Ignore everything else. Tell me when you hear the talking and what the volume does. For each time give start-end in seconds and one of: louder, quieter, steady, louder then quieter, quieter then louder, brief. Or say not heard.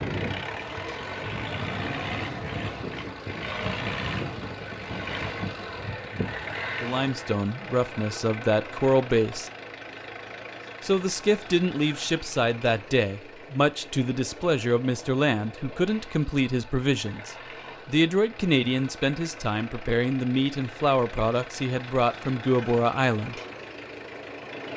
6.8-9.5 brief
10.8-23.4 steady.